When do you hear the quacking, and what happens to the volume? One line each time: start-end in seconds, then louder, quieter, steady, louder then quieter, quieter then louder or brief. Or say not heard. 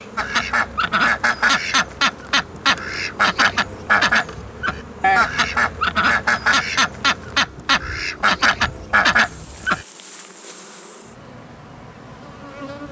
0.1-9.8 steady.